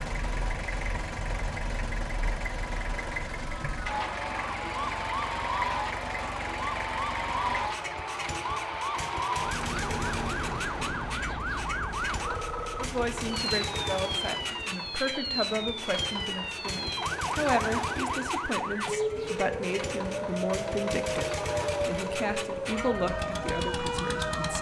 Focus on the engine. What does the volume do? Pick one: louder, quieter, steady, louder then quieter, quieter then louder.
steady.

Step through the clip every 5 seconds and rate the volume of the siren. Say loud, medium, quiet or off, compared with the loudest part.
medium, loud, loud, loud, loud.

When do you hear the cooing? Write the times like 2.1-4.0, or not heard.
not heard.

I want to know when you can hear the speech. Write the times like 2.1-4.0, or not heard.
12.8-24.5.